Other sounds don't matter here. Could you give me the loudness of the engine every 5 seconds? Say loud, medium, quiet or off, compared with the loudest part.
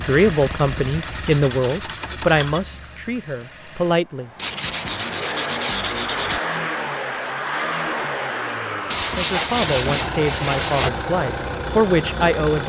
medium, loud, loud.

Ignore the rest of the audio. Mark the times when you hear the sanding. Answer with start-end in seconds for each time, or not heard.
1.0-2.6, 4.3-6.4, 8.9-10.9.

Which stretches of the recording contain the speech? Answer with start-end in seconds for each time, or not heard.
0.0-4.3, 9.2-12.6.